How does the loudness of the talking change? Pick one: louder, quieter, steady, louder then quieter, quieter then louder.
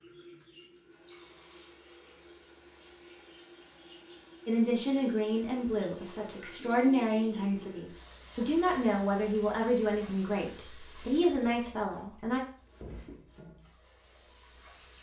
steady.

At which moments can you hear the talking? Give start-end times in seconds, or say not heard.
4.5-12.4.